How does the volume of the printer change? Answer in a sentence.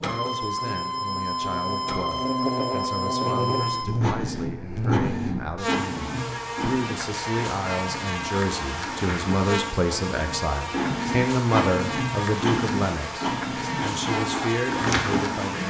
The loudness of the printer goes down, then up.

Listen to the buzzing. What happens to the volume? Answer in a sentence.
The loudness of the buzzing stays about the same.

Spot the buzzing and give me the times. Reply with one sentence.
The buzzing can be heard from 0.1 to 15.6 s.